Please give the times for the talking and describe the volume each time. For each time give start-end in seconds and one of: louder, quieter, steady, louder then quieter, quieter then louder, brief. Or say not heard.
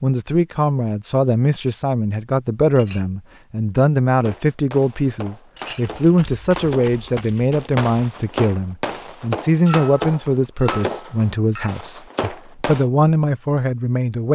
0.0-14.3 steady.